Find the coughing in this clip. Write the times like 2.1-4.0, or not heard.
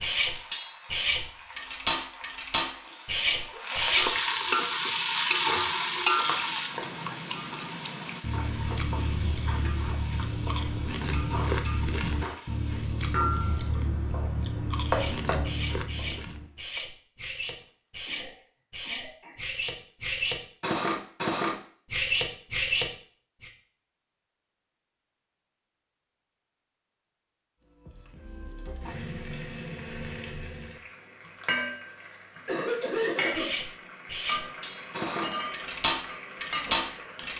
3.3-3.8, 17.6-19.4, 32.5-33.5.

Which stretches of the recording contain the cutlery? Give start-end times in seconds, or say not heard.
0.0-4.1, 14.8-23.5, 33.3-37.3.